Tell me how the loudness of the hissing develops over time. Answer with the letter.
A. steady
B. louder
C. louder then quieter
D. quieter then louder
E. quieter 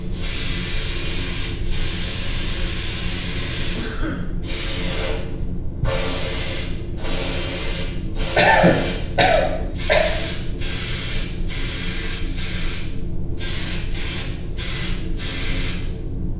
A.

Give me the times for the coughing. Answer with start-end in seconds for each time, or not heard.
3.8-4.3, 8.3-10.1.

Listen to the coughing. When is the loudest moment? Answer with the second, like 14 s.
9 s.